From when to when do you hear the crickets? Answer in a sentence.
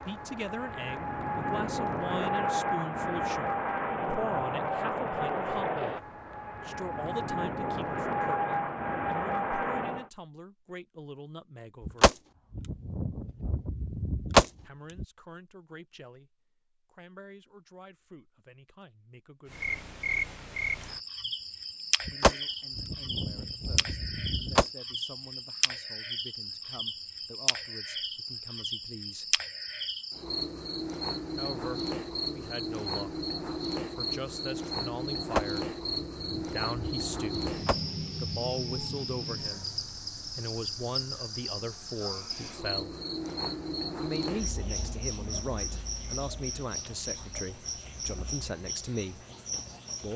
You can hear the crickets from 19.4 to 50.1 s.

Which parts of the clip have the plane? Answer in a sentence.
You can hear the plane from 0.0 to 10.1 s.